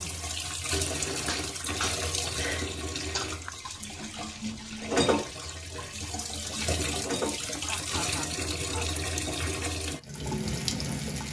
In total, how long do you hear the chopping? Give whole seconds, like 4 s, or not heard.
not heard.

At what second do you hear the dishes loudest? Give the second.
5 s.